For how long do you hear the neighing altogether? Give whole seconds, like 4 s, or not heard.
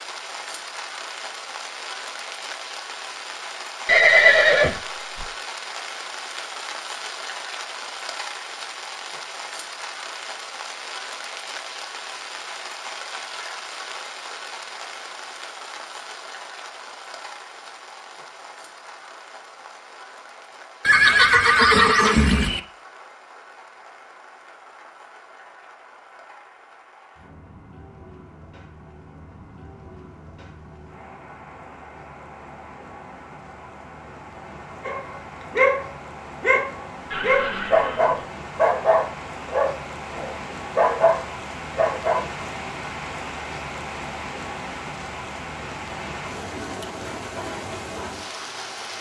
4 s.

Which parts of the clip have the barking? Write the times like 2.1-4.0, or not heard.
34.9-42.2.